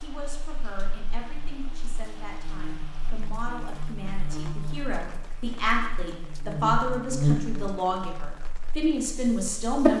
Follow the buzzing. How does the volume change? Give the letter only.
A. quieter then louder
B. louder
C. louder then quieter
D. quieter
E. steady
C.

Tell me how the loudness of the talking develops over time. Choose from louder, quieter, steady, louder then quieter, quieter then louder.
louder.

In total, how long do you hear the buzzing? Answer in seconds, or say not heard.
10 s.